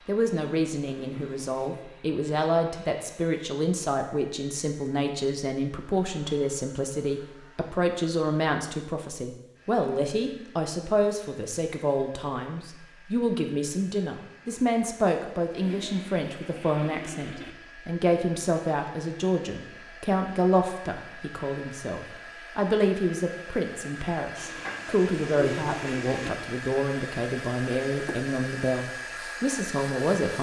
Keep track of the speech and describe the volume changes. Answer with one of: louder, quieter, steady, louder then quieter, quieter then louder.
steady.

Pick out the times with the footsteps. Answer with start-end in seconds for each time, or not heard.
not heard.